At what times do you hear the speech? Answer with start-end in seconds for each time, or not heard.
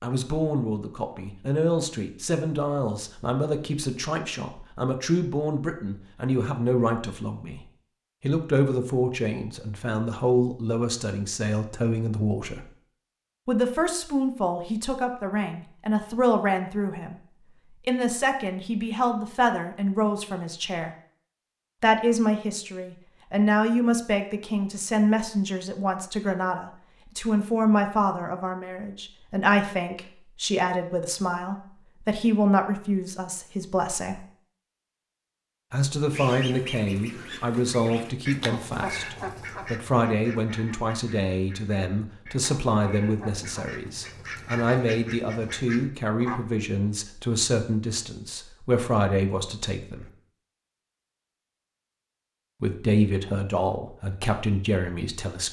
0.0-12.7, 13.4-20.9, 21.8-34.2, 35.7-50.0, 52.6-55.4.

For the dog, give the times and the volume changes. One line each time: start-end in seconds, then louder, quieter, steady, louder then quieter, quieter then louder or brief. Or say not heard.
not heard.